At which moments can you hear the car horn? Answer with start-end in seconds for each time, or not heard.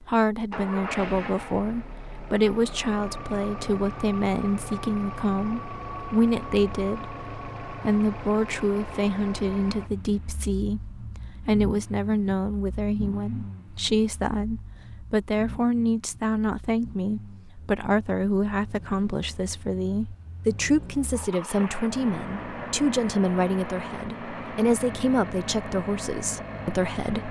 not heard.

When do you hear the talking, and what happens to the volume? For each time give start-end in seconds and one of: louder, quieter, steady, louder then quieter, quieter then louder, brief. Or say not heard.
0.0-27.2 steady.